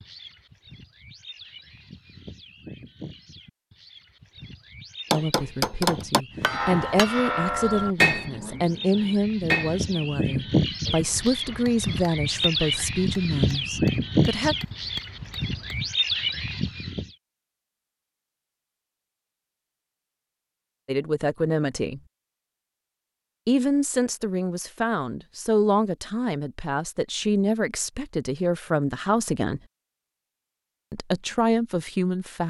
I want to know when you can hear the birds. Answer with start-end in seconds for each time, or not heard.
0.0-17.1.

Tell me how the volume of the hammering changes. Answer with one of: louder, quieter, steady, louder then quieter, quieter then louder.
quieter.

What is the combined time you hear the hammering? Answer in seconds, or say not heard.
11 s.